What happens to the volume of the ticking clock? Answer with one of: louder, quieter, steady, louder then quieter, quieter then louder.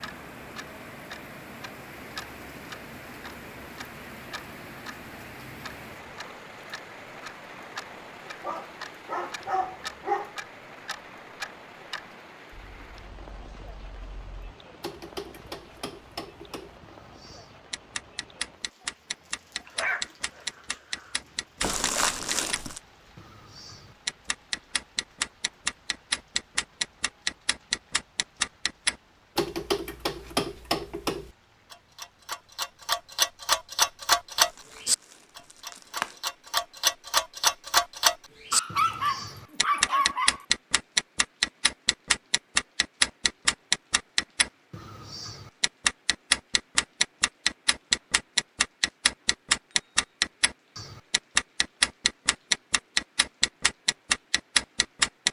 louder.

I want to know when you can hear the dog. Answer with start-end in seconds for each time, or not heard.
8.4-10.3, 19.6-21.1, 38.5-40.5.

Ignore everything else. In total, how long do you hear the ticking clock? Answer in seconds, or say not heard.
55 s.